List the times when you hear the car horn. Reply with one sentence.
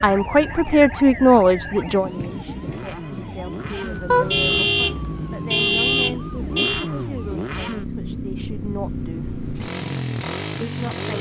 The car horn can be heard from 4.1 to 6.8 s.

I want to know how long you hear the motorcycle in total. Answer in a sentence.
The motorcycle can be heard for 11 seconds in total.